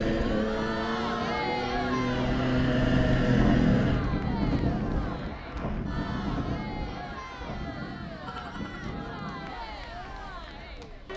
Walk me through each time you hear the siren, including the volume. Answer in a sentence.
The siren can't be heard in this clip.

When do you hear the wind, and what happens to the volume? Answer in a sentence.
The wind can be heard from 0.0 to 11.1 s, getting louder then quieter.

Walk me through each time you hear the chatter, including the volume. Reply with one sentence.
You can hear the chatter from 0.2 to 11.1 s, getting quieter.